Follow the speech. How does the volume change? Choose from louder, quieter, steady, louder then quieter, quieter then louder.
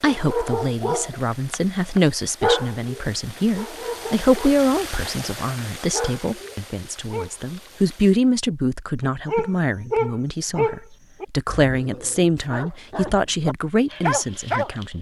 steady.